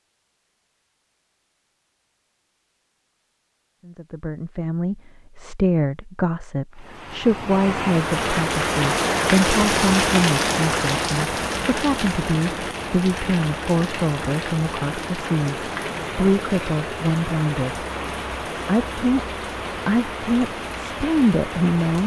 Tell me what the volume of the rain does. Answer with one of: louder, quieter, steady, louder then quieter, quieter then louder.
quieter.